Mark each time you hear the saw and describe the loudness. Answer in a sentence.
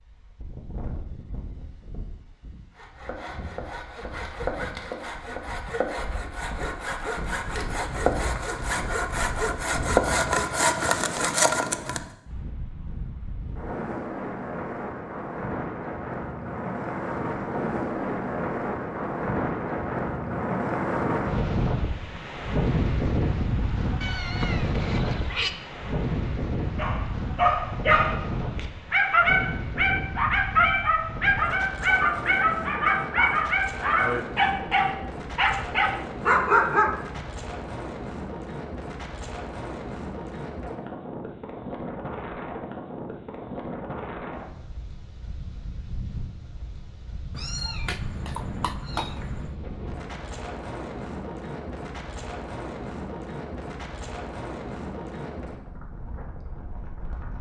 You can hear the saw from 2.8 to 12.0 s, getting louder.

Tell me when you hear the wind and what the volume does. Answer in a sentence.
The wind can be heard from 0.0 to 57.3 s, getting louder then quieter.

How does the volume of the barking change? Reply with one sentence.
The loudness of the barking stays about the same.